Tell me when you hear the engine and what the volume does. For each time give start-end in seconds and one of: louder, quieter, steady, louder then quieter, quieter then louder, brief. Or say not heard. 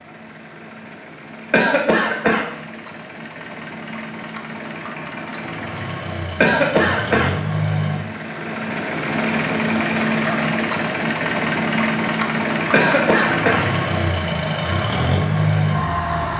0.0-16.3 louder.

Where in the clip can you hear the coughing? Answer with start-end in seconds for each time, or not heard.
1.5-2.5, 6.4-7.3, 12.7-13.7.